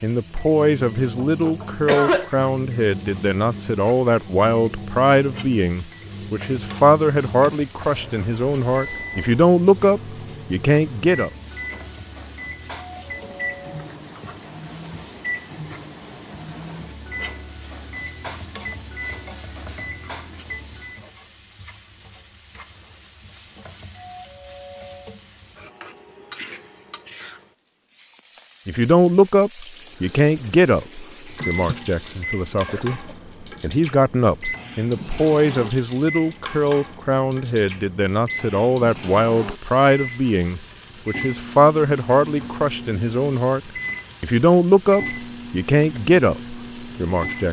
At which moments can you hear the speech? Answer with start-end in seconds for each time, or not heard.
0.0-11.3, 28.6-43.6, 44.2-47.4.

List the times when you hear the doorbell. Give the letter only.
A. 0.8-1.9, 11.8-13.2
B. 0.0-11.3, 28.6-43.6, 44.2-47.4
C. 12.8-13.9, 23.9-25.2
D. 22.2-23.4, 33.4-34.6
C.